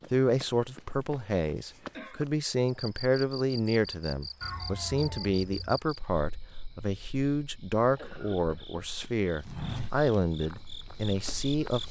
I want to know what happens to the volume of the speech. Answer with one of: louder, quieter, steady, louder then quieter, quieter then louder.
steady.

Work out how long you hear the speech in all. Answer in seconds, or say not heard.
12 s.